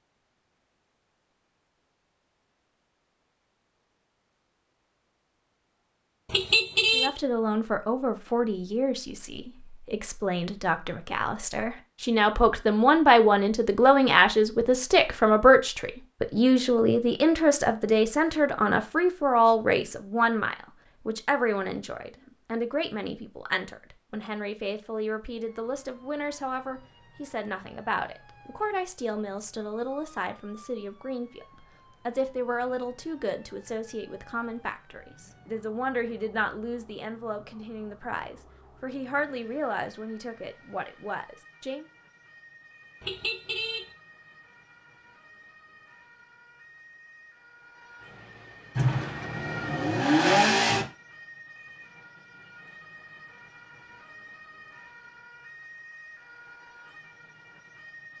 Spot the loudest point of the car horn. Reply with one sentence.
The loudest moment of the car horn is at 7 seconds.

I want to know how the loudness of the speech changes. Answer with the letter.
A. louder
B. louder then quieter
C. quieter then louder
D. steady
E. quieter
E.